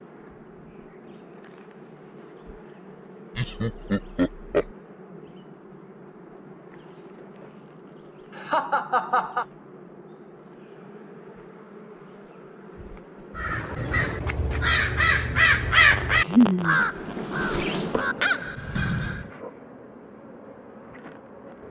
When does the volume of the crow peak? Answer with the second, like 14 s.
16 s.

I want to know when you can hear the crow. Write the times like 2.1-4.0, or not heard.
13.3-19.2.